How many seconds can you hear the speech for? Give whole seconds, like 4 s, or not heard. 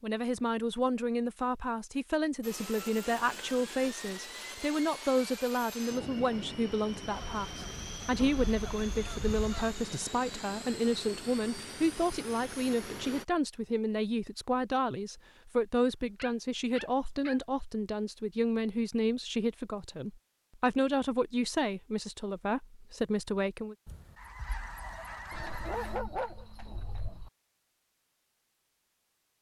24 s.